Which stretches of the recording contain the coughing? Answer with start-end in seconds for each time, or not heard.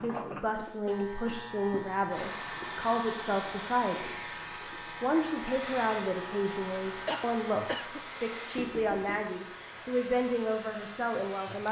0.6-1.2, 7.0-8.0.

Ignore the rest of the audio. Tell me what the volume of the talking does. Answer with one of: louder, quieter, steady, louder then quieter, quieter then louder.
steady.